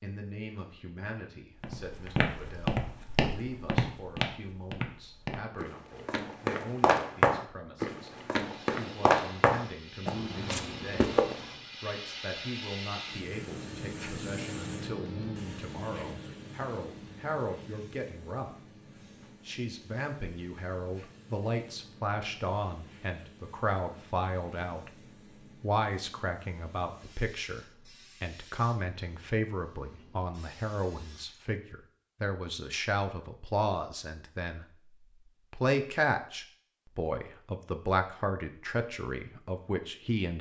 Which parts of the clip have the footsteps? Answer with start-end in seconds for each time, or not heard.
1.6-11.4.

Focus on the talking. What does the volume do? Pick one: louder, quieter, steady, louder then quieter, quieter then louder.
louder.